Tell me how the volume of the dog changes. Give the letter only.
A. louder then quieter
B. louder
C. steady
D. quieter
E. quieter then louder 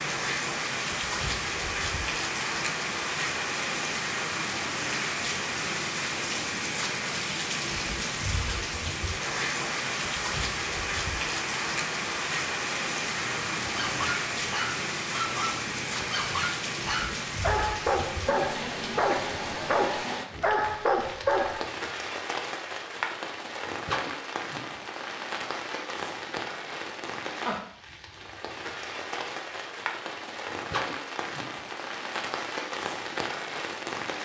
B.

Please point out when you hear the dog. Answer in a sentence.
You can hear the dog from 13.2 to 21.6 s.